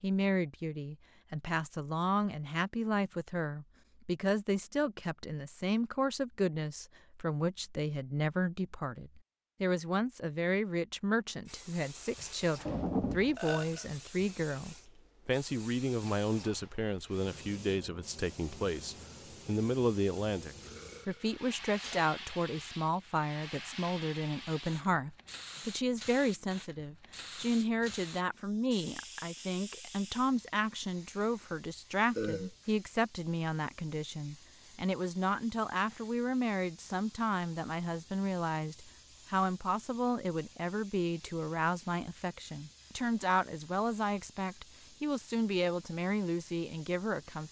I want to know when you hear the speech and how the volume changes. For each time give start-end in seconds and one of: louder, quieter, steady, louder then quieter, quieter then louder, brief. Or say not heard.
0.0-47.4 steady.